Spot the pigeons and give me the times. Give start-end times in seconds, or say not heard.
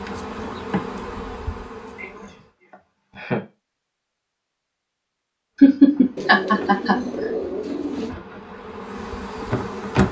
6.2-8.2.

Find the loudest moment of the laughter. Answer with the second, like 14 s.
6 s.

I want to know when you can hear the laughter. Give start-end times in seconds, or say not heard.
1.9-3.4, 5.6-7.0.